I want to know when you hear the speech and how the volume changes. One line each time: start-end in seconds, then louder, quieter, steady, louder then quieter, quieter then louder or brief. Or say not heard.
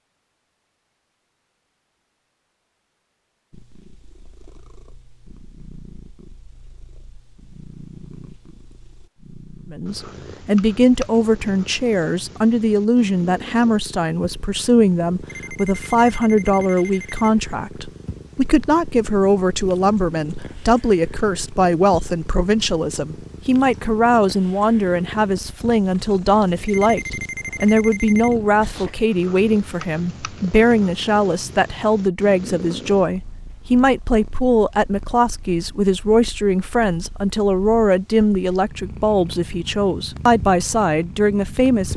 9.7-41.9 steady.